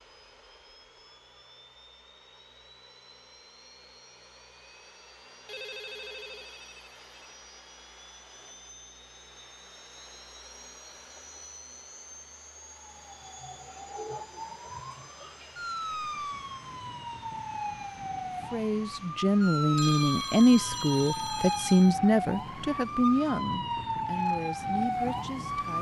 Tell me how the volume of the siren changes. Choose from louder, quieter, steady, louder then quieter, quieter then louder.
louder.